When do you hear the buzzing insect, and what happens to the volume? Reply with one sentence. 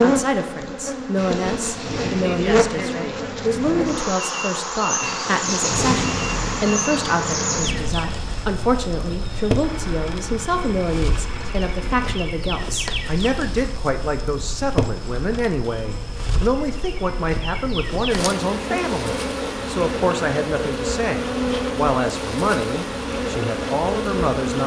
You can hear the buzzing insect from 0.0 to 24.6 s, getting quieter then louder.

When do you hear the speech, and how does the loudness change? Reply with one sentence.
You can hear the speech from 0.0 to 24.6 s, at a steady volume.